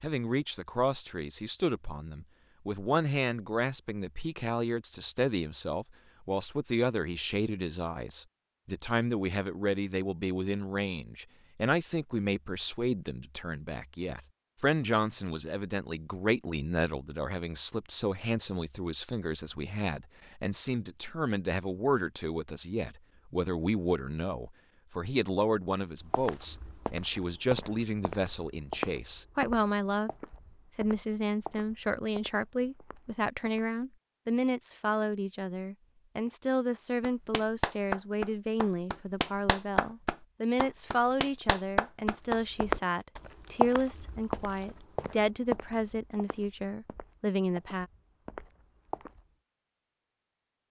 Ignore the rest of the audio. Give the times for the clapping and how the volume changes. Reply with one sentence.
The clapping can be heard from 37.0 to 42.4 s, getting quieter then louder.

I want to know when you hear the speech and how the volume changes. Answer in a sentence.
You can hear the speech from 0.0 to 30.1 s, at a steady volume; and from 30.8 to 47.9 s, at a steady volume.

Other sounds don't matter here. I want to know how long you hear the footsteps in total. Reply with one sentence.
You can hear the footsteps for 14 seconds altogether.